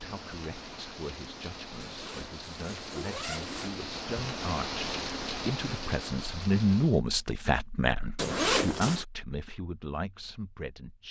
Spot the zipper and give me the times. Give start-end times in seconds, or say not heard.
1.8-3.8, 8.2-9.1.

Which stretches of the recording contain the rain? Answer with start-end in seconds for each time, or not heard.
0.0-7.0.